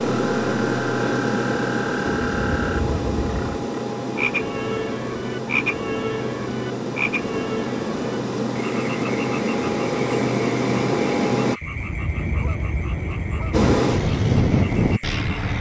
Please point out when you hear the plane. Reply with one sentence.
You can hear the plane from 0.0 to 11.6 s and from 13.5 to 15.5 s.